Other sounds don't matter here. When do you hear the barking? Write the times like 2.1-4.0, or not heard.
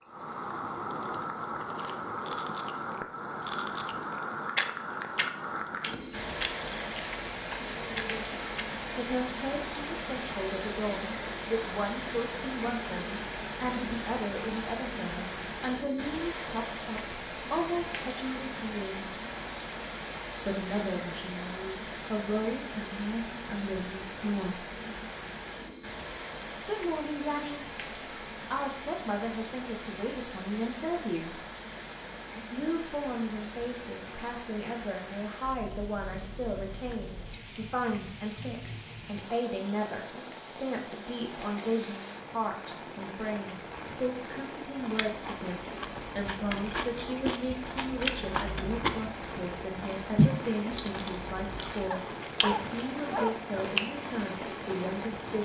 51.9-53.4.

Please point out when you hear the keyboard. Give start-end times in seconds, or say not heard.
not heard.